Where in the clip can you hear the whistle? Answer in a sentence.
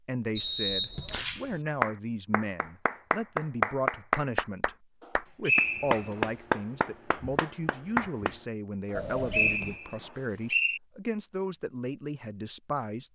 You can hear the whistle from 0.3 to 1.2 s, from 5.5 to 6.2 s and from 8.9 to 10.8 s.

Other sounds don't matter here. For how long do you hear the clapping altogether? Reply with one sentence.
The clapping can be heard for 7 seconds in total.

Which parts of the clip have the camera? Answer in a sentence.
You can hear the camera from 1.1 to 1.6 s and from 8.9 to 9.8 s.